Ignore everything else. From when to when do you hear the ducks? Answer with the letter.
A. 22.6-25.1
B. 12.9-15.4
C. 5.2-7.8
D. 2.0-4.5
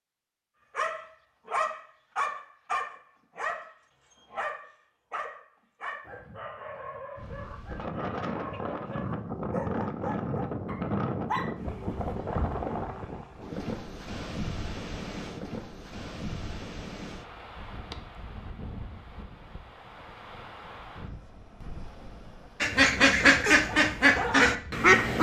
A.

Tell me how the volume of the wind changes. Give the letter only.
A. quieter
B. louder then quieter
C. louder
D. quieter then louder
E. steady
A.